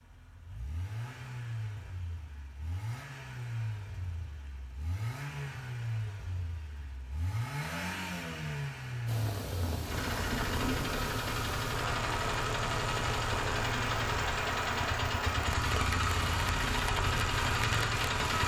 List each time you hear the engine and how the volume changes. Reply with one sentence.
The engine can be heard from 0.0 to 18.4 s, getting louder.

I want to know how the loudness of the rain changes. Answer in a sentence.
The volume of the rain stays about the same.